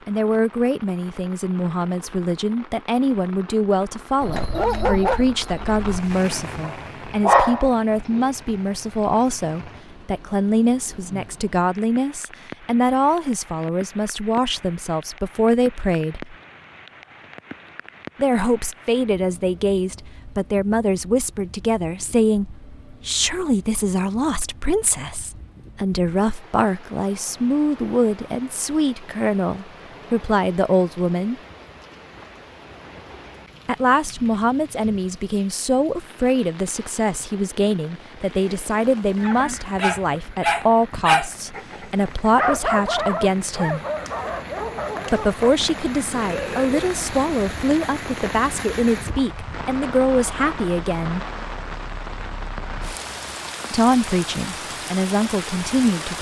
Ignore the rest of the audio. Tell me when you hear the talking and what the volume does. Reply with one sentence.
You can hear the talking from 0.1 to 16.4 s, at a steady volume; from 18.1 to 31.4 s, at a steady volume; from 33.6 to 43.8 s, at a steady volume; from 45.1 to 51.2 s, at a steady volume; and briefly from 53.7 to 56.1 s.